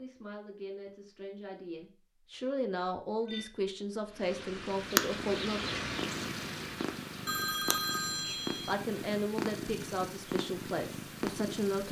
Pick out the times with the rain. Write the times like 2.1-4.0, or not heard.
4.0-11.8.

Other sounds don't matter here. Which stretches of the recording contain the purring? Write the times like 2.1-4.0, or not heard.
4.8-11.8.